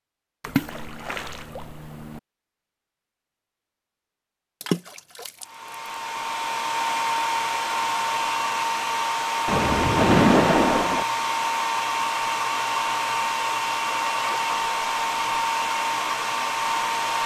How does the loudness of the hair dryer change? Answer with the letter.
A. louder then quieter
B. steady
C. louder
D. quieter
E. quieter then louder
B.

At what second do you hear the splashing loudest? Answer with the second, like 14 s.
10 s.